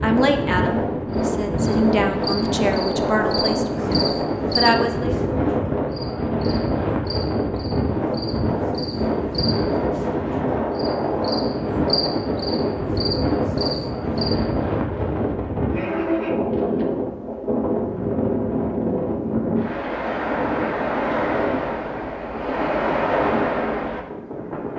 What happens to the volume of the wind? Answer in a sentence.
The loudness of the wind stays about the same.